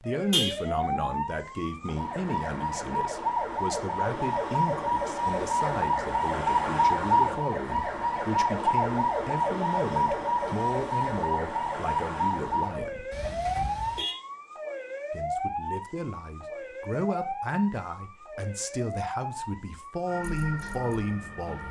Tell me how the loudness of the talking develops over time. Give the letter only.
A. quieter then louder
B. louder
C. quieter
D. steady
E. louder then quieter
D.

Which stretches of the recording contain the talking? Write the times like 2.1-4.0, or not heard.
0.0-13.1, 15.1-21.6.